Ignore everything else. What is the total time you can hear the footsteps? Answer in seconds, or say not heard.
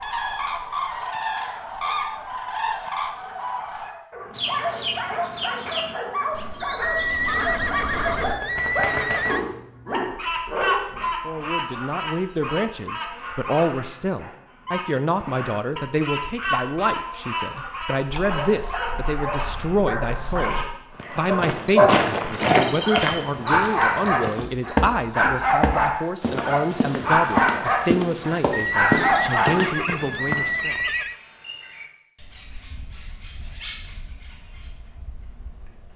10 s.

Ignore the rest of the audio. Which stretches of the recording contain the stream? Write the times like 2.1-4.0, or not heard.
not heard.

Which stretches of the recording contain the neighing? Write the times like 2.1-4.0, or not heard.
6.8-9.4, 28.5-31.1.